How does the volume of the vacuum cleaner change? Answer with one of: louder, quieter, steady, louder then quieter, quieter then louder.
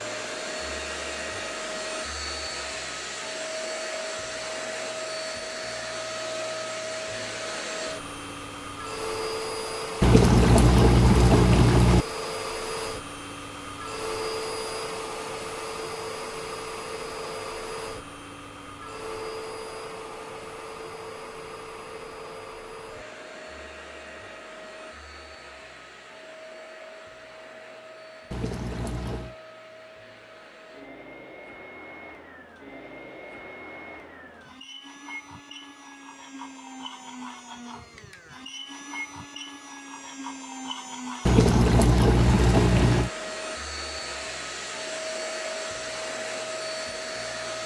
quieter then louder.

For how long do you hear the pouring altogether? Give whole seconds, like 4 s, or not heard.
5 s.